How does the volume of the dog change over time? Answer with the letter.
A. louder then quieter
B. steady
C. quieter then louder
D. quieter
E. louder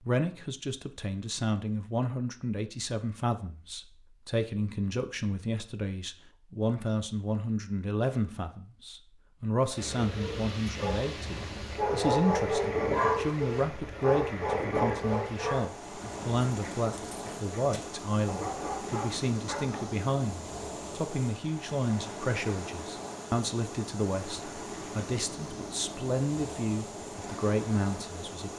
A.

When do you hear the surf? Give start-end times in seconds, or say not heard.
9.8-28.5.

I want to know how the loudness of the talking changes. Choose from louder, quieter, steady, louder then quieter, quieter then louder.
steady.